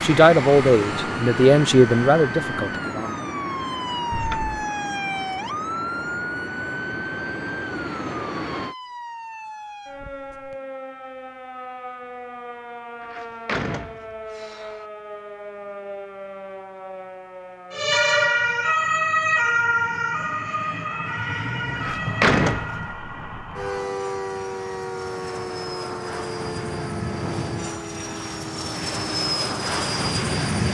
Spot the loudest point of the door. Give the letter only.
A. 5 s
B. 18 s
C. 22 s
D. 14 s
C.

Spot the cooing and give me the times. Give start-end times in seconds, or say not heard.
not heard.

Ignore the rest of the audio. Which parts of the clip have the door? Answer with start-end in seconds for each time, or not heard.
4.1-4.5, 13.0-14.8, 21.8-22.9.